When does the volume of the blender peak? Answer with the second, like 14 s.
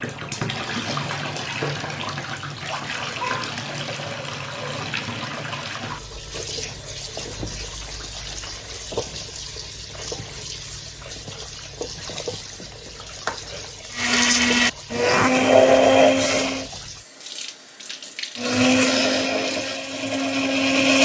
16 s.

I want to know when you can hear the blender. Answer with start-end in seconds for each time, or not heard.
13.9-16.6, 18.4-21.0.